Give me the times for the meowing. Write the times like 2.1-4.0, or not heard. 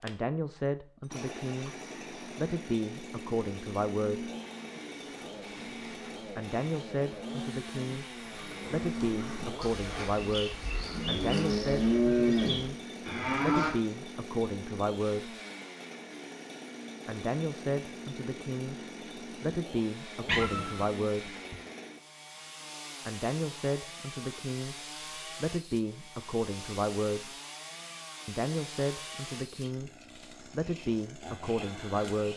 20.2-21.6.